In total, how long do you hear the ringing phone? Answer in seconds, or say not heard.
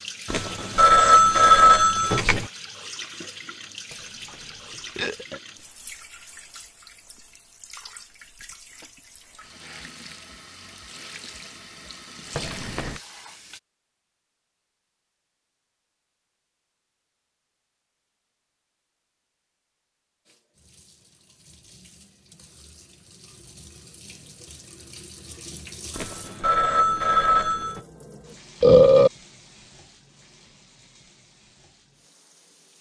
4 s.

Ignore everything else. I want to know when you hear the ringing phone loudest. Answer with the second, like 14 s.
2 s.